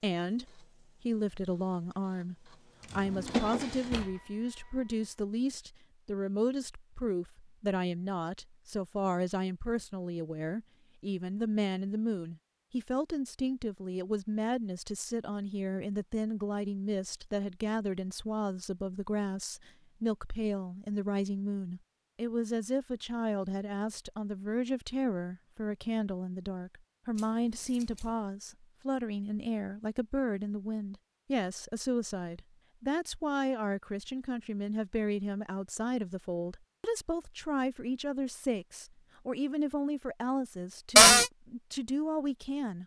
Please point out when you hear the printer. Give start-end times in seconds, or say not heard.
0.2-5.1.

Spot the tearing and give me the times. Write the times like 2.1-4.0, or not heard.
not heard.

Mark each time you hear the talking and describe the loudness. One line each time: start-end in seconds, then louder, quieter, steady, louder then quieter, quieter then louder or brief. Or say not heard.
0.0-42.8 steady.